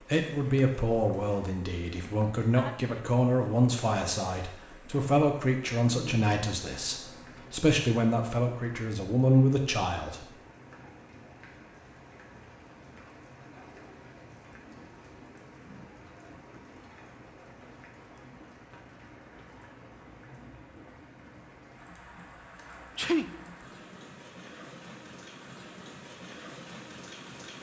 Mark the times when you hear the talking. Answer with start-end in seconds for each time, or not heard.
0.1-10.2.